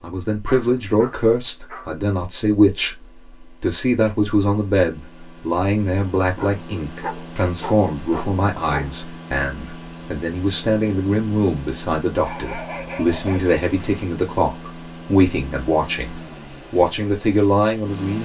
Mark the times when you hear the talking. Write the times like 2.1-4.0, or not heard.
0.0-18.1.